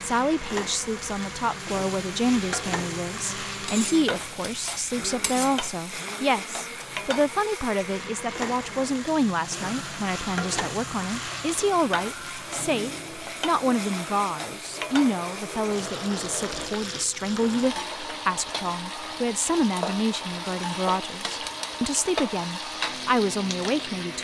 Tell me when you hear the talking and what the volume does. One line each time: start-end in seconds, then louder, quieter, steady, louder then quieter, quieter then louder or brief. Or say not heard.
0.0-24.1 steady.